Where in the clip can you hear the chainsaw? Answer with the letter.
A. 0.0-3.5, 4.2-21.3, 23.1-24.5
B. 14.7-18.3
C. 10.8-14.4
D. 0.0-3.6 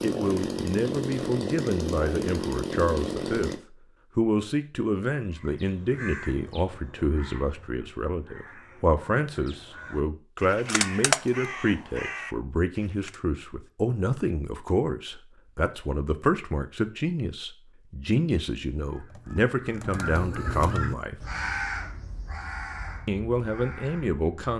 D.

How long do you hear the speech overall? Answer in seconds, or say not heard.
22 s.